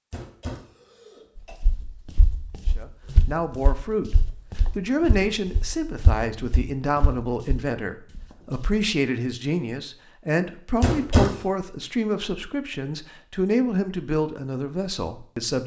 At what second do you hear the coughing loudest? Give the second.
11 s.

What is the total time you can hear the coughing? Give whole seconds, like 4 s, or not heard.
2 s.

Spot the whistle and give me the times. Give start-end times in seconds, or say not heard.
not heard.